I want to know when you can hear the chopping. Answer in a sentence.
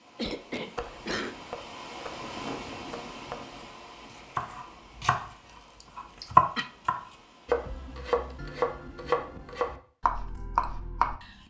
The chopping can be heard from 0.8 to 5.3 s and from 6.0 to 11.3 s.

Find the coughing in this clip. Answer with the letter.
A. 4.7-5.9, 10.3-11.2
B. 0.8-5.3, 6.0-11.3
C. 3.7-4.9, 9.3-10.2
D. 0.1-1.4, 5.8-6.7
D.